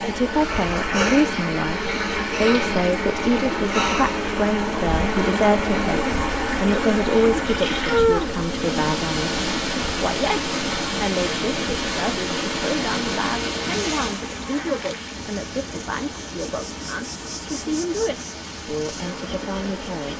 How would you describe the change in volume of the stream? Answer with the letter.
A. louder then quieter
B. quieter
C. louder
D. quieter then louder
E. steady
B.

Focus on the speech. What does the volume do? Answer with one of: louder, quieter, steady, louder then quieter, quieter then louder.
quieter.